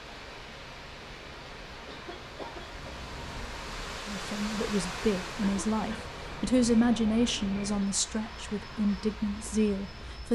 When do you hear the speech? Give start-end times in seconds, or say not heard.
4.0-10.3.